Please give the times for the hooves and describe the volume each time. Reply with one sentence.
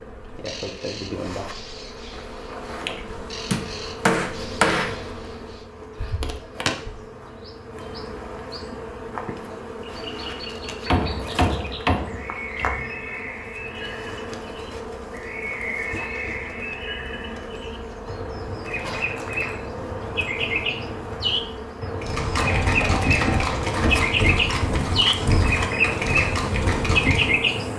The hooves can be heard from 22.0 to 27.4 s, at a steady volume.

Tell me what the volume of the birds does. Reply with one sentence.
The volume of the birds goes up.